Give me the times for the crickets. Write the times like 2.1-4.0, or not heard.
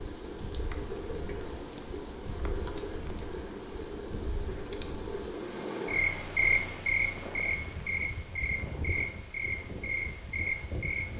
0.0-11.1.